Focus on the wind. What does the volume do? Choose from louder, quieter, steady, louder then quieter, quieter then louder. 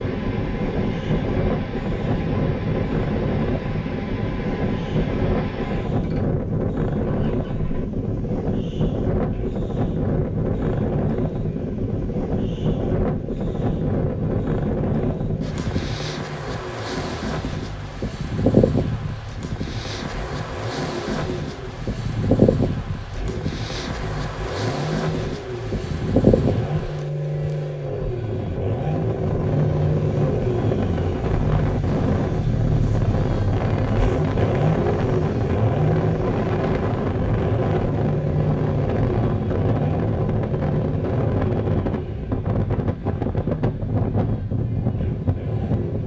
steady.